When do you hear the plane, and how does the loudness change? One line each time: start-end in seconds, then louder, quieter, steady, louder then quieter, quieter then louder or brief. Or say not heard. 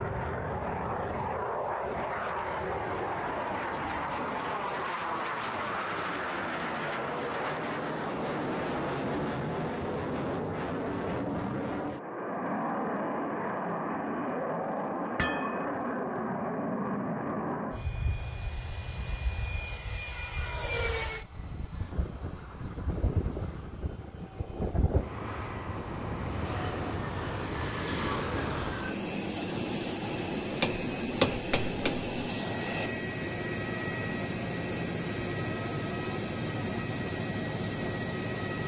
0.0-38.6 steady.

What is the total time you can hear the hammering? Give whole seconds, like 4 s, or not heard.
2 s.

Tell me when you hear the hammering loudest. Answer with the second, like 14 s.
31 s.